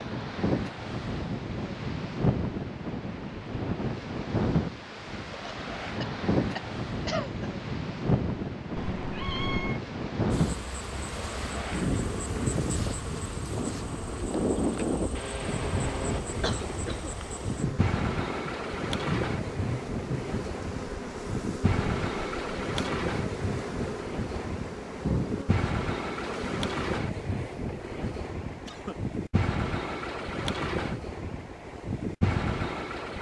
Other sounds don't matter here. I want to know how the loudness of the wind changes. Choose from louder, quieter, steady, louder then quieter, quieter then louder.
steady.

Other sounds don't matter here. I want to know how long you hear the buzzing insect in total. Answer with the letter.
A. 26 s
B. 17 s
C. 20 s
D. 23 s
B.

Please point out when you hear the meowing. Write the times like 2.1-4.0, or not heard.
8.8-9.8.